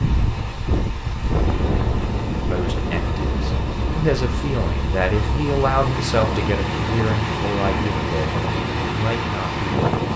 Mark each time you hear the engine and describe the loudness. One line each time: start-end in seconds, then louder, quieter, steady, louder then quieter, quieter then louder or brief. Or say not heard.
0.0-10.1 louder.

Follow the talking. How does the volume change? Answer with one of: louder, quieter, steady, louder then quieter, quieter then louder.
louder then quieter.